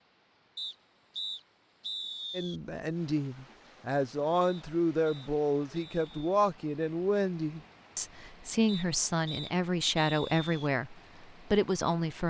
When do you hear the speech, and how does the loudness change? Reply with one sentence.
The speech can be heard from 2.4 to 12.2 s, at a steady volume.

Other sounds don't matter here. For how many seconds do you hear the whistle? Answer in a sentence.
The whistle can be heard for 6 seconds in total.